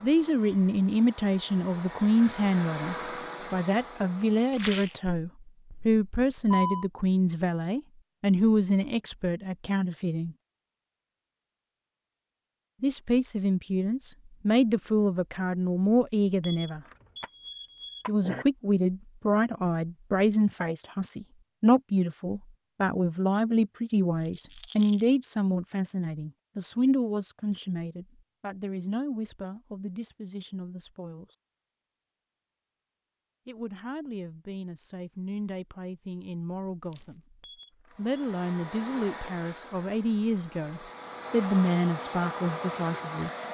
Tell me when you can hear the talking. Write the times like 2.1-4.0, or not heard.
0.0-10.3, 12.8-16.8, 18.1-31.2, 33.5-37.2, 38.0-43.3.